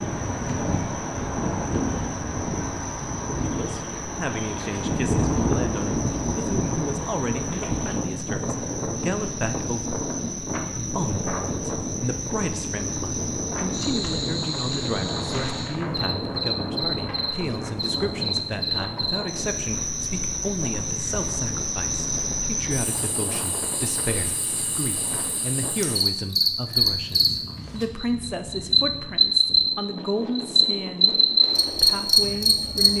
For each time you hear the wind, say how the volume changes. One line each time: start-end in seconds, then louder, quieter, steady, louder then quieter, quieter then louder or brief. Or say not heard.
0.0-32.9 quieter.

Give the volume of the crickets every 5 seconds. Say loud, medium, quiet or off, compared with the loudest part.
quiet, quiet, quiet, medium, medium, loud, loud.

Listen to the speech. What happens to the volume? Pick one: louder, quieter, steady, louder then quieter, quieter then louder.
steady.